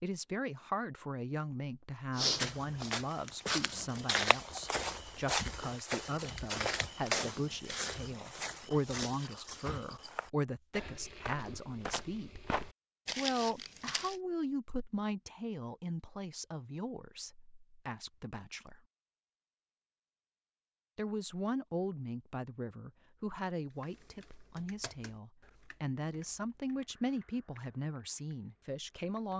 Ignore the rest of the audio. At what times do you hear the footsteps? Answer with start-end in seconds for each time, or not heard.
2.1-14.2.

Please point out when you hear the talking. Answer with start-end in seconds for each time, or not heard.
0.0-12.4, 13.2-18.8, 20.9-29.3.